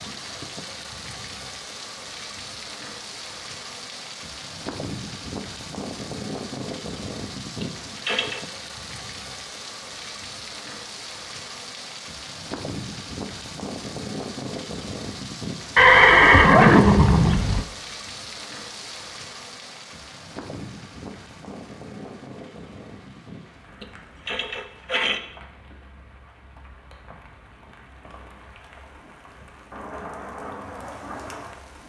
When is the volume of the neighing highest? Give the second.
16 s.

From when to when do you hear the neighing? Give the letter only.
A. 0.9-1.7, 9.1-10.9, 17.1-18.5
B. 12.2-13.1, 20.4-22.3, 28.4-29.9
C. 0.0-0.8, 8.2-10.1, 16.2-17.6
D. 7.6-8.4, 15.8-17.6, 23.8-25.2
D.